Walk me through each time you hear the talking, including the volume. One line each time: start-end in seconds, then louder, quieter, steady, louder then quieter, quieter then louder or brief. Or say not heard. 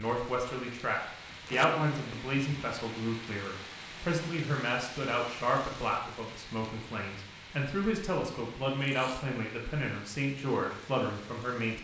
0.0-11.7 steady.